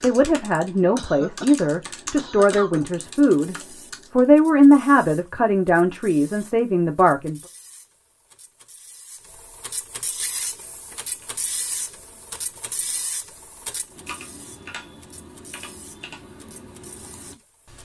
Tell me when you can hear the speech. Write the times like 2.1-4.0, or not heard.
0.0-7.4.